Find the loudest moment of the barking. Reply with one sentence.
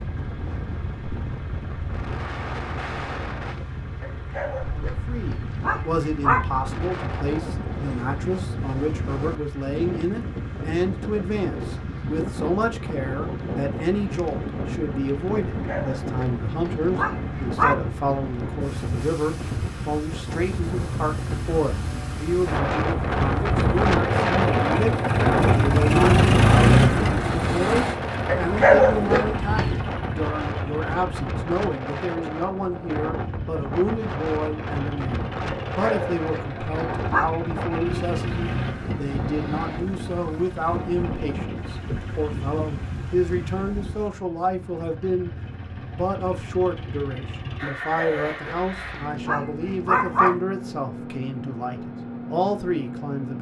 The volume of the barking peaks at 29 seconds.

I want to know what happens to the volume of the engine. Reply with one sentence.
The volume of the engine goes up, then down.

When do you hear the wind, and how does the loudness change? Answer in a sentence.
You can hear the wind from 0.0 to 44.1 s, getting louder then quieter.